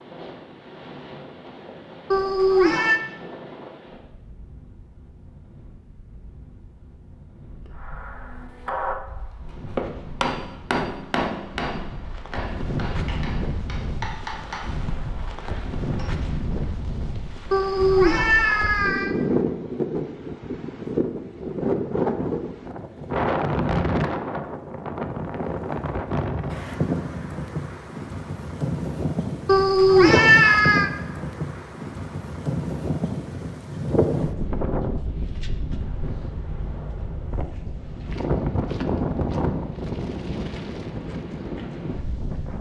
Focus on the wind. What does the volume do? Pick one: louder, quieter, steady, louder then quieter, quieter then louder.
louder.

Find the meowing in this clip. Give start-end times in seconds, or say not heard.
2.1-3.0, 17.5-19.1, 29.4-30.9.